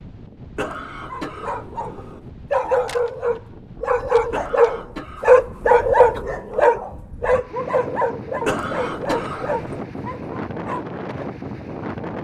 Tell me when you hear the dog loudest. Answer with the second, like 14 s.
6 s.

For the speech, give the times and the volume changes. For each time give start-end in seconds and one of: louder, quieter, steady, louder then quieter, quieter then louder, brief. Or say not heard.
not heard.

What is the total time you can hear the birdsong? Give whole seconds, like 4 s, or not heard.
not heard.